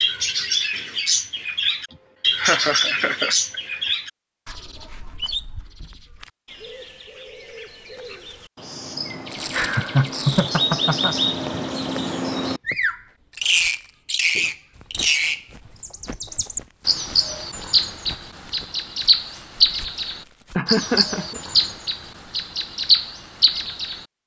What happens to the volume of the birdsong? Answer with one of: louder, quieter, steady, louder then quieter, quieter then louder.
quieter then louder.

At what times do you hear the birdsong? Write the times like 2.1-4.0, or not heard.
0.0-24.1.